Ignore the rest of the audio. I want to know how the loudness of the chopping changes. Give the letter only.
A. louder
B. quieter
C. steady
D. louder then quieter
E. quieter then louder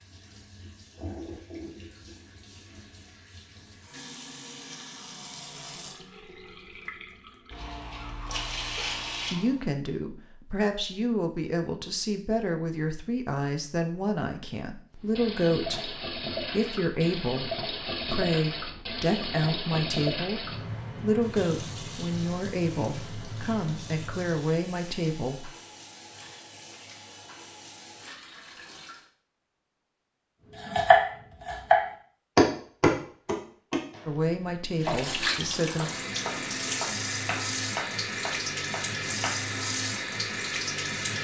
B.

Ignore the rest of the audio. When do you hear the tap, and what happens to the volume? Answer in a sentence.
The tap can be heard from 0.0 to 9.6 s, getting quieter then louder; from 14.9 to 29.1 s, getting quieter; and from 34.8 to 41.1 s, at a steady volume.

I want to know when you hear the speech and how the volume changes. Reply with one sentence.
The speech can be heard from 9.3 to 25.5 s, at a steady volume; and briefly from 34.0 to 35.9 s.